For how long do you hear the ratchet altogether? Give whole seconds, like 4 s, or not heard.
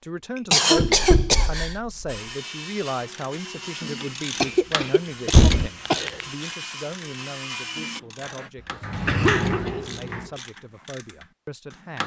9 s.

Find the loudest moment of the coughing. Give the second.
1 s.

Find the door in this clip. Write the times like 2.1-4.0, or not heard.
0.9-2.1, 5.3-5.7, 8.8-10.2.